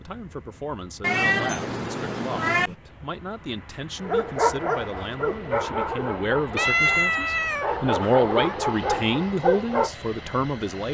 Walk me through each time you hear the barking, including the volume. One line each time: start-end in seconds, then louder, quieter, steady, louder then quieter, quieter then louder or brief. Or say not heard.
4.0-9.9 quieter then louder.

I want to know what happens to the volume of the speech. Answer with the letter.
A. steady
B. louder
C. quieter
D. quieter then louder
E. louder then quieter
B.